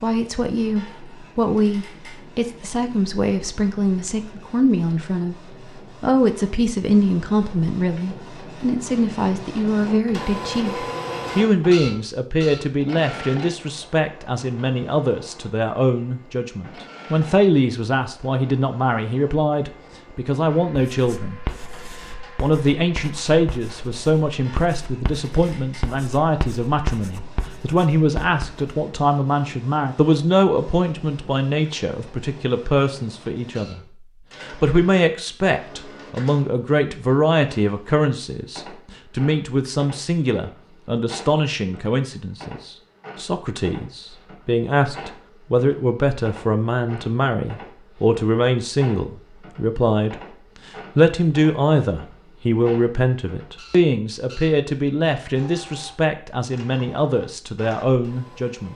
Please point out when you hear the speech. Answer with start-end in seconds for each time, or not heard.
0.0-5.3, 6.0-21.4, 22.4-33.8, 34.4-50.1, 51.0-58.7.